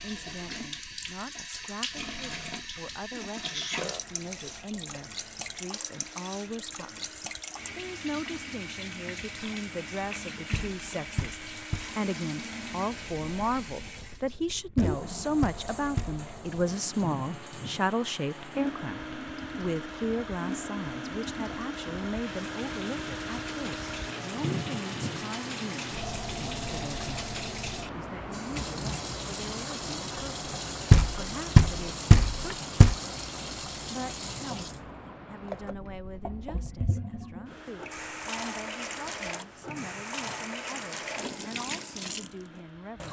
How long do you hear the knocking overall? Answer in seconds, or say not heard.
5 s.